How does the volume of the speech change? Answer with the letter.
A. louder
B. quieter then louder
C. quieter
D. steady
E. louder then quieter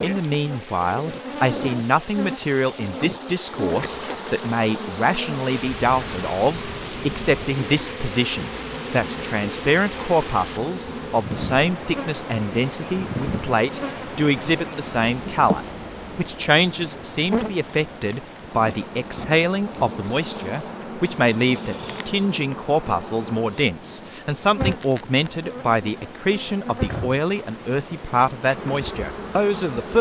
D.